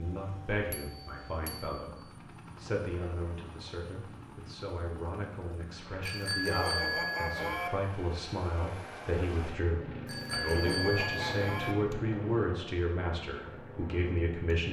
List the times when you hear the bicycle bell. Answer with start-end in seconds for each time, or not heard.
0.7-1.9, 6.0-7.7, 10.1-11.8.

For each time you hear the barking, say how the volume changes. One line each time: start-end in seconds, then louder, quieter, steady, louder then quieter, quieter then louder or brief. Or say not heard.
not heard.